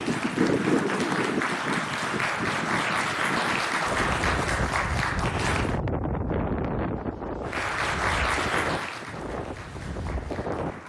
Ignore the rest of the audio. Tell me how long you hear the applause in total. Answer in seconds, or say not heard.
9 s.